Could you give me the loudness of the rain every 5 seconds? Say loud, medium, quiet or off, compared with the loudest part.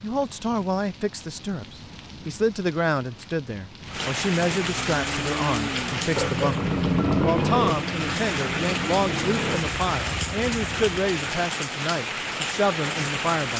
medium, loud, loud.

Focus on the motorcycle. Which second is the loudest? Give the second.
7 s.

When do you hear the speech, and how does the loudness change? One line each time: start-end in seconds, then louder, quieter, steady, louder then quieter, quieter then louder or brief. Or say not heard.
0.0-13.5 steady.